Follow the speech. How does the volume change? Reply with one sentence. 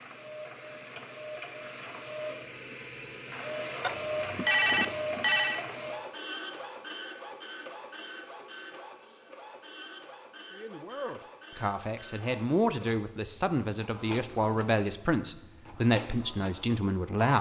The loudness of the speech goes up.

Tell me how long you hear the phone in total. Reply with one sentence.
You can hear the phone for 2 seconds altogether.